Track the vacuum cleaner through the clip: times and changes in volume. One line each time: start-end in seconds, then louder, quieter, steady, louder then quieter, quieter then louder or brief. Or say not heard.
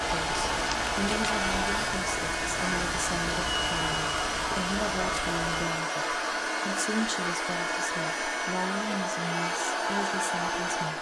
0.0-10.9 steady.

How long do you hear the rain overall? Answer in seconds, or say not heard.
6 s.